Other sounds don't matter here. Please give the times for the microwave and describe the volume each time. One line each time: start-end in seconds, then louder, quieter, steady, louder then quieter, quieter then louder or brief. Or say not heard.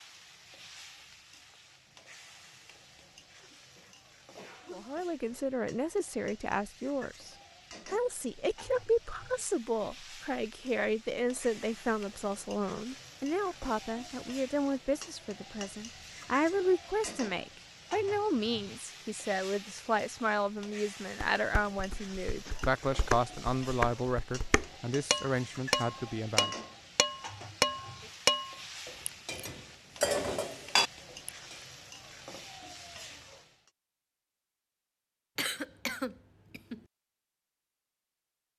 not heard.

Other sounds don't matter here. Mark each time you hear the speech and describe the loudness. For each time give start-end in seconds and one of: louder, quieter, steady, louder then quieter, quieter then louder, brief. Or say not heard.
4.7-26.6 steady.